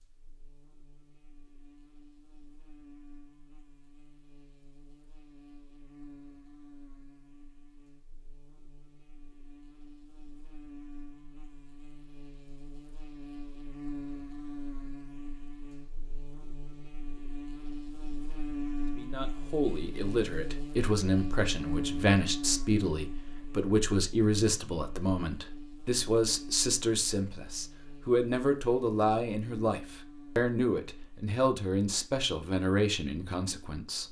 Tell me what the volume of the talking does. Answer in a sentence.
The loudness of the talking stays about the same.